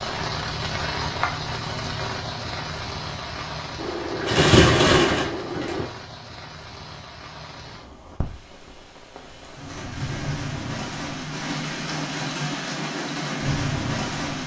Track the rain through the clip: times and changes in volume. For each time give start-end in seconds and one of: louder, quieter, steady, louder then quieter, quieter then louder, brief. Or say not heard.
0.0-14.4 quieter then louder.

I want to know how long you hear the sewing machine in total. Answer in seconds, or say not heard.
2 s.